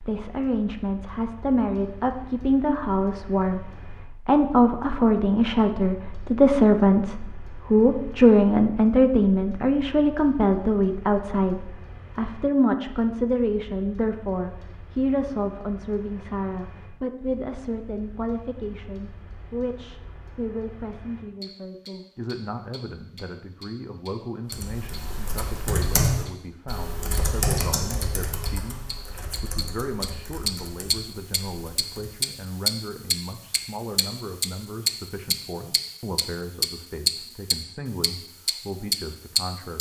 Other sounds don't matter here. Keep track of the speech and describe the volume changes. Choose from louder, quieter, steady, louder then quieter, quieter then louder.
quieter.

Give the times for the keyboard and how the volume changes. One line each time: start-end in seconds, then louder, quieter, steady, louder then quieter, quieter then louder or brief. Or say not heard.
24.5-32.2 quieter.